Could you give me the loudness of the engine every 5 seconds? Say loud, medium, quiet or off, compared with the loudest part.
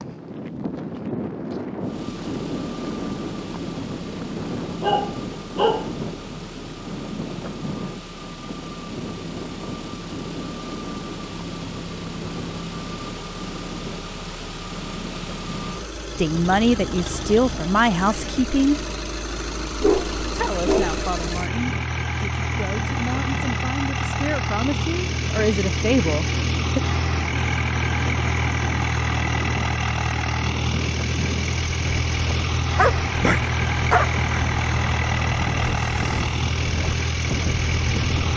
quiet, quiet, medium, medium, loud, loud, loud, loud.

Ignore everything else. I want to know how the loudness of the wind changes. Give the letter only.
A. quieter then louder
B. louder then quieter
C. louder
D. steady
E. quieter
A.